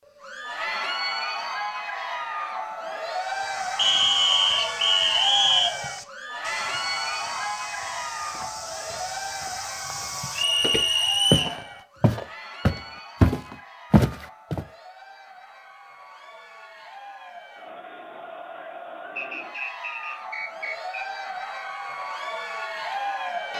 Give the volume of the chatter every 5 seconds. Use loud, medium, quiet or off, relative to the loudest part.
loud, loud, medium, medium, loud.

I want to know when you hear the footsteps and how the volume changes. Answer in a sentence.
The footsteps can be heard from 3.1 to 14.7 s, getting louder.